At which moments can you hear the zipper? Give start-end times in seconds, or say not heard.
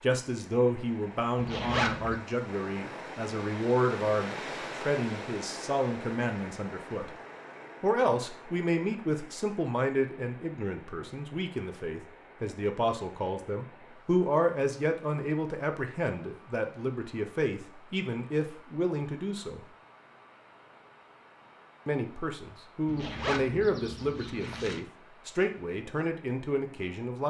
1.4-2.1, 22.9-24.8.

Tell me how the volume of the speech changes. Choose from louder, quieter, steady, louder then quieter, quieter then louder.
steady.